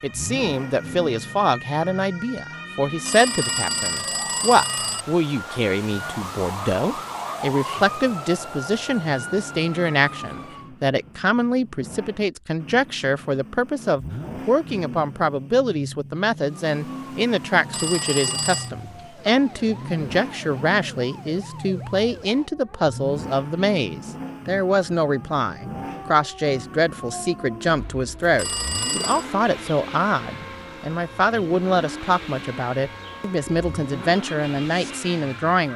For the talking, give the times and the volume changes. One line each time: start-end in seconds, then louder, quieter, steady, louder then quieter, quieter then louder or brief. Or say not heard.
0.0-35.7 steady.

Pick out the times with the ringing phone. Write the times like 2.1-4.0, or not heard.
3.0-5.0, 17.7-18.7, 28.4-29.2.